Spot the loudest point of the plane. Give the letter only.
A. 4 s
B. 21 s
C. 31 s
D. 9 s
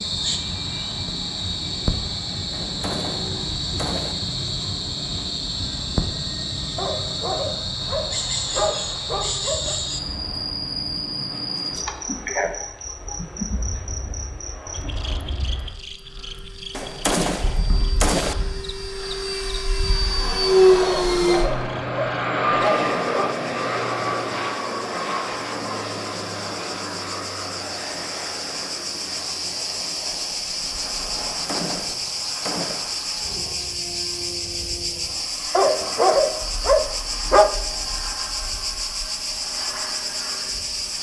B.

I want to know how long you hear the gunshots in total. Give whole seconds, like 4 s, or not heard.
5 s.